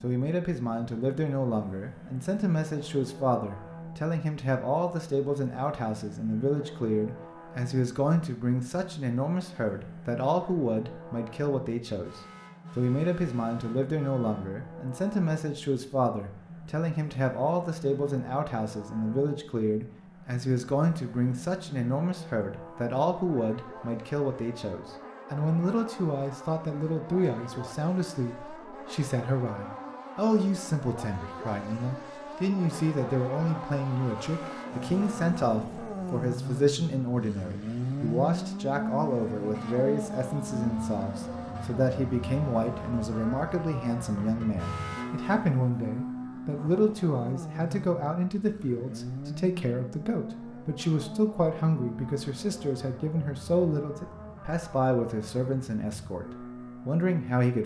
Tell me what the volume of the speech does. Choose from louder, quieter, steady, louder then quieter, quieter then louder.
steady.